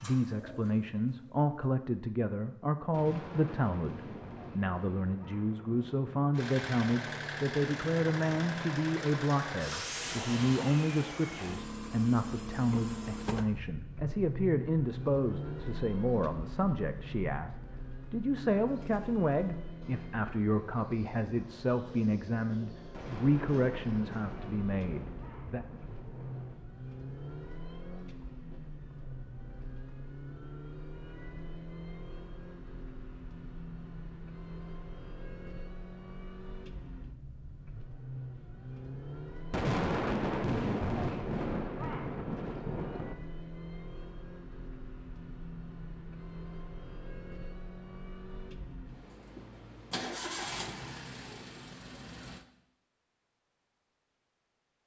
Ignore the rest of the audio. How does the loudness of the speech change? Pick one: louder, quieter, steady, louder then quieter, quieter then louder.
steady.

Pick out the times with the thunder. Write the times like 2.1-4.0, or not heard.
2.9-6.3, 22.9-26.6, 39.5-43.1.